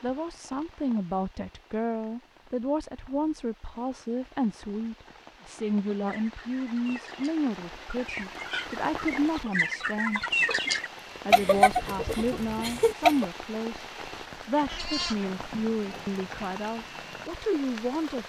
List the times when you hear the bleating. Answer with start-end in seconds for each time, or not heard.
14.6-16.2.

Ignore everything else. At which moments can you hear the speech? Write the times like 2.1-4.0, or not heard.
0.0-10.2, 11.2-13.8, 14.4-18.2.